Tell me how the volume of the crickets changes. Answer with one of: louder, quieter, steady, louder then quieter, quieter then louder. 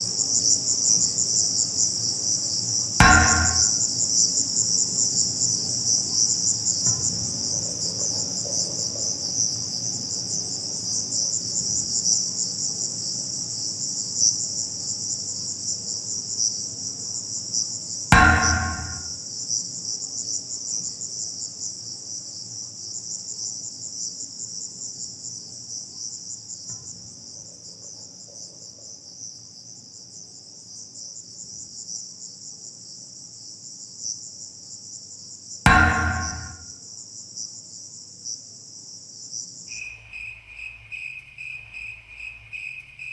quieter.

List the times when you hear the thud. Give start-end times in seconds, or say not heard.
3.0-3.6, 18.1-18.9, 35.6-36.5.